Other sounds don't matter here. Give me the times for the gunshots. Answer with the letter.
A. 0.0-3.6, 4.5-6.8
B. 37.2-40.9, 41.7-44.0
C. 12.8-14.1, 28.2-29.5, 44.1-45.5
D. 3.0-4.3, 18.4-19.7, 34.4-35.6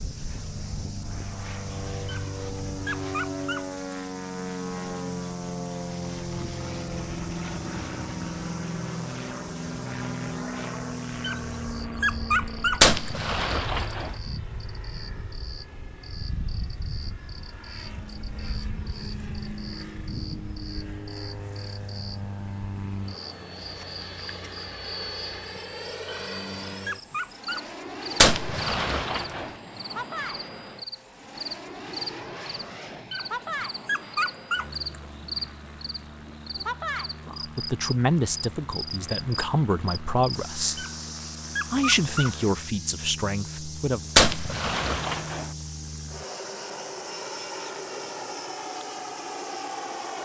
C.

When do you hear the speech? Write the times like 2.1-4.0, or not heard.
37.2-40.9, 41.7-44.0.